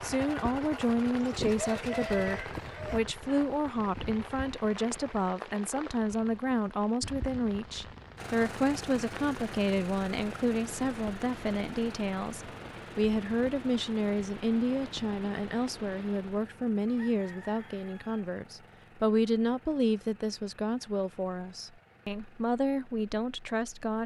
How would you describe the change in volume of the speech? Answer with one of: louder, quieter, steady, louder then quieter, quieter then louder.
steady.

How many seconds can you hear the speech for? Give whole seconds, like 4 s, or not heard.
24 s.